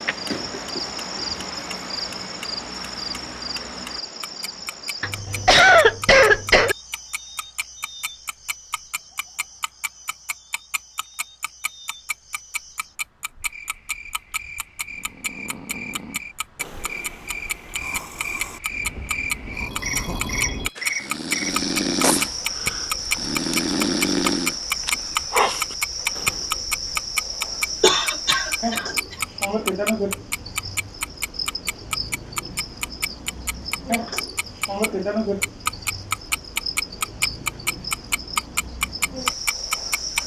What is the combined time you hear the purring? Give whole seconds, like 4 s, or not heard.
not heard.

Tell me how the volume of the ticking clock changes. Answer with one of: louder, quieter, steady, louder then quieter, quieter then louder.
louder.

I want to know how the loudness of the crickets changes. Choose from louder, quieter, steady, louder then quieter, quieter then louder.
quieter then louder.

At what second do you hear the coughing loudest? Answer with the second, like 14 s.
6 s.